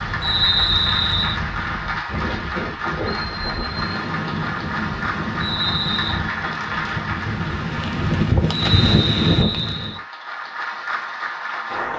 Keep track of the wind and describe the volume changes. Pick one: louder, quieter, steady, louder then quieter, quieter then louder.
louder.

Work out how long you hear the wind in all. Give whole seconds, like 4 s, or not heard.
10 s.